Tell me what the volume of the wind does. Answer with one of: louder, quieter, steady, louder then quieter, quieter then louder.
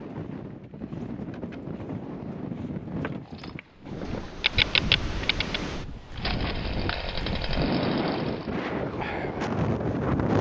louder.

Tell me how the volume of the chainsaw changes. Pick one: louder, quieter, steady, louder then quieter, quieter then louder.
quieter.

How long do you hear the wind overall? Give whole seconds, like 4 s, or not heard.
10 s.